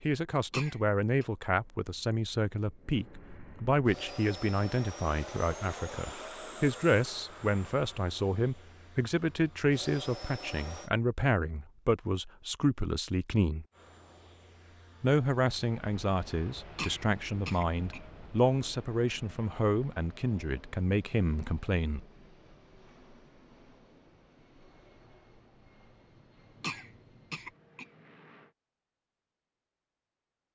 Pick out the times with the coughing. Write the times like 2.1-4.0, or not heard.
0.5-1.2, 16.8-18.0, 26.6-27.9.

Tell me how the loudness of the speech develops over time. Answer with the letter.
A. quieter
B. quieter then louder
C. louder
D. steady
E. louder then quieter
D.